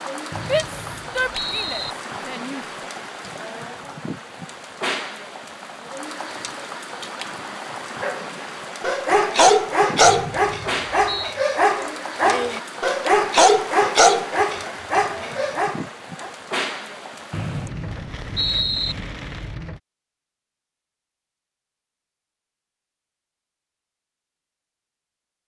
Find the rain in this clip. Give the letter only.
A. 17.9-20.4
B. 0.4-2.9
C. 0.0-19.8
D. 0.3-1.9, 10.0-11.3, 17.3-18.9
C.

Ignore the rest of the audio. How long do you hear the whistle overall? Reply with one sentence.
The whistle can be heard for 5 seconds in total.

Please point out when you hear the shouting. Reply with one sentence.
You can hear the shouting from 0.4 to 2.9 s.